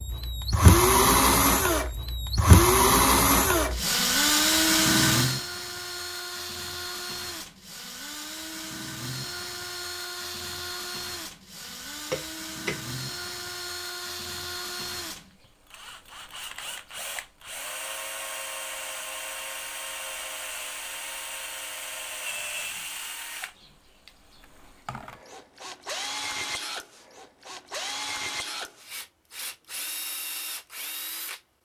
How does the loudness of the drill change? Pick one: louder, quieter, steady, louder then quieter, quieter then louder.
quieter.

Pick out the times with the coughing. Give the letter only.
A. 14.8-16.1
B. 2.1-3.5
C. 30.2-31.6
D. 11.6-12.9
D.